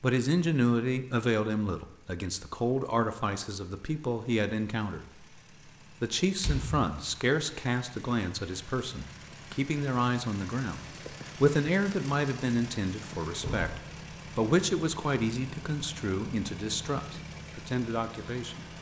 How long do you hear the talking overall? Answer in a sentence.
The talking can be heard for 18 seconds in total.